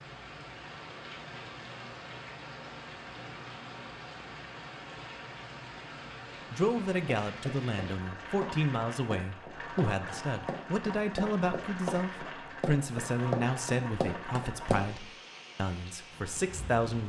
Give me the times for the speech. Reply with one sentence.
You can hear the speech from 6.5 to 17.0 s.